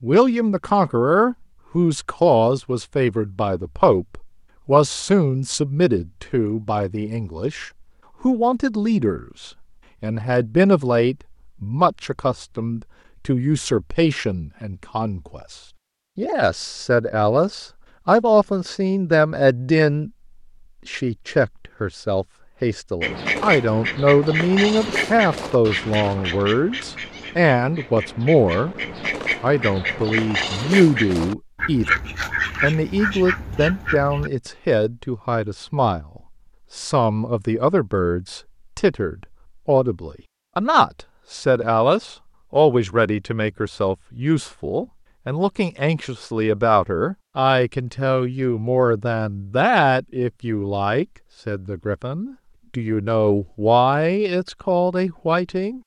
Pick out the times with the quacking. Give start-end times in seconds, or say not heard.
23.0-34.3.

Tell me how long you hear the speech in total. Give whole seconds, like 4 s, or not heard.
53 s.